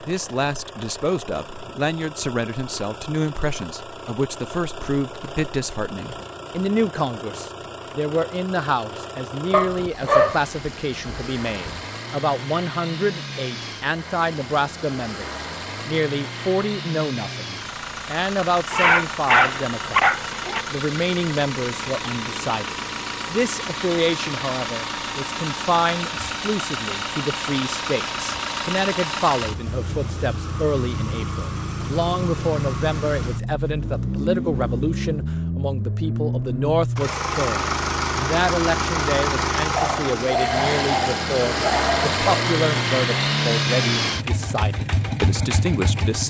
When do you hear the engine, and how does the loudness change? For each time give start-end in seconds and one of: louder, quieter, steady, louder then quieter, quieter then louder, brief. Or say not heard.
0.0-46.2 louder.